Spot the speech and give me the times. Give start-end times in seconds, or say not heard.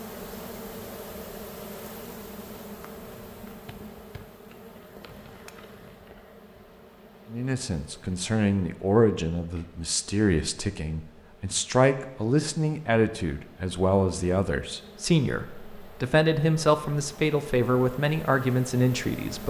7.3-19.4.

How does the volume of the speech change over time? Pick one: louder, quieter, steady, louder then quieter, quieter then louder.
steady.